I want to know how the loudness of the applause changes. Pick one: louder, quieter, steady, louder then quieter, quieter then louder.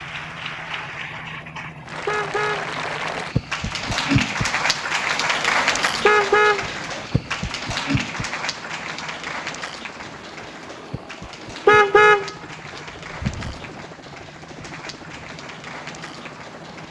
louder then quieter.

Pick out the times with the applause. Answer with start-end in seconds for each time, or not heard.
0.0-16.8.